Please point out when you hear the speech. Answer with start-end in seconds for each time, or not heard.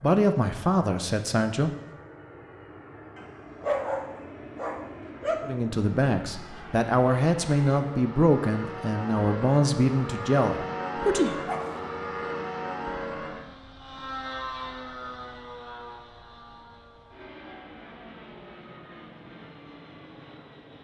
0.0-1.7, 5.4-11.3.